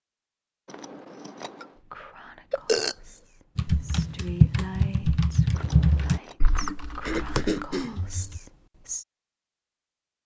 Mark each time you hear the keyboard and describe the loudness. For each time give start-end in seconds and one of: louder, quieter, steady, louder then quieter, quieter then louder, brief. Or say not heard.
3.5-8.4 quieter.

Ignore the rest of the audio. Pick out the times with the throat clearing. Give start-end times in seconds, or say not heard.
2.5-3.0, 7.0-8.1.